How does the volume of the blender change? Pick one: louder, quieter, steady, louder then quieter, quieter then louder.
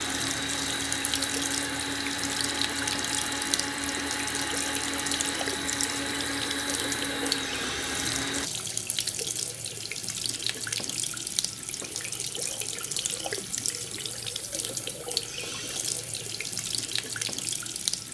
steady.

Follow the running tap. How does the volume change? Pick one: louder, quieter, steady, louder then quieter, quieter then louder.
steady.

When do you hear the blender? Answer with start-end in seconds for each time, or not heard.
0.0-8.5.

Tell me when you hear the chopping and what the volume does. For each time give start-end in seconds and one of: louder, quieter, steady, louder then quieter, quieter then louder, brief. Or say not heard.
not heard.